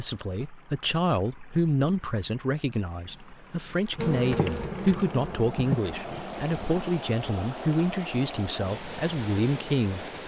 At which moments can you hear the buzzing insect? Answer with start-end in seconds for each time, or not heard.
4.0-6.8.